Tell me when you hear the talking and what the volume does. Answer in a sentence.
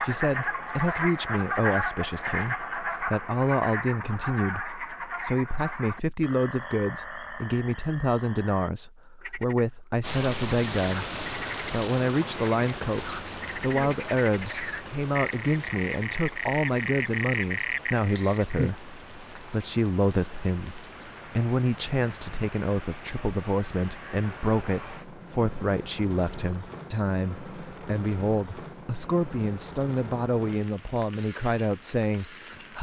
The talking can be heard from 0.0 to 32.7 s, at a steady volume.